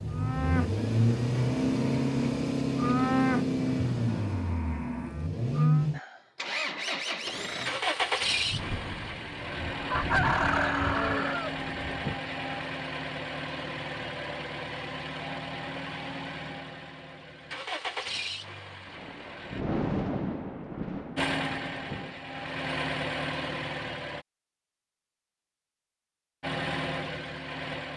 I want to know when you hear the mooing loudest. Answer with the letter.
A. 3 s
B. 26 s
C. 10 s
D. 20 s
A.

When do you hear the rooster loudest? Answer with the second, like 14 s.
10 s.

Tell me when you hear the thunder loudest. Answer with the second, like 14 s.
20 s.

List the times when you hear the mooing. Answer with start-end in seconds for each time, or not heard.
0.1-5.8.